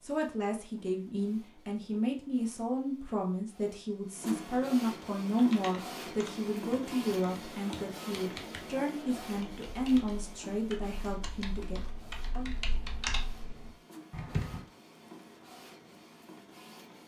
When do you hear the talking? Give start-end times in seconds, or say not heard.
0.0-12.6.